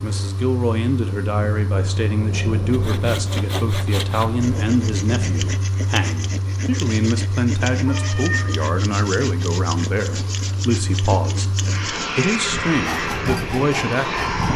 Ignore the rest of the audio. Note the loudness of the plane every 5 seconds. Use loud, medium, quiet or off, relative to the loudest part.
medium, medium, loud.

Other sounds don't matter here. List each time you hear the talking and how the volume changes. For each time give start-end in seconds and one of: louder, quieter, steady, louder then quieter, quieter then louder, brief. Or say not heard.
0.0-14.5 steady.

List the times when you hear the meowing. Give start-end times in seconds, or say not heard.
7.8-8.6.